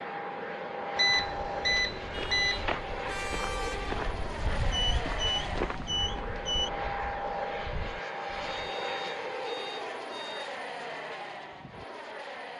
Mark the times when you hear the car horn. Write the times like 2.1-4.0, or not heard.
2.1-4.0.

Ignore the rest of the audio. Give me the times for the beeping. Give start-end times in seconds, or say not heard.
0.9-2.6, 4.7-6.7, 8.4-10.6.